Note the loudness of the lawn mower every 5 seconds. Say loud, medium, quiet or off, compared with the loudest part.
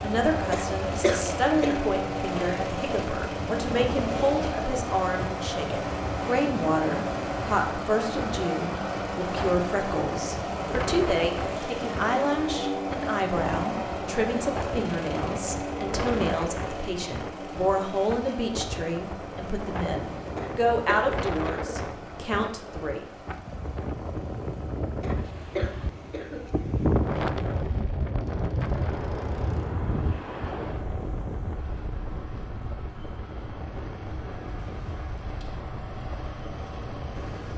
loud, loud, loud, medium, quiet, quiet, quiet, medium.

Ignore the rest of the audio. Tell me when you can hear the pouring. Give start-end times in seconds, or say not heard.
not heard.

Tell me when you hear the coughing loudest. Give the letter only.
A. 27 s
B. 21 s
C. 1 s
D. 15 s
C.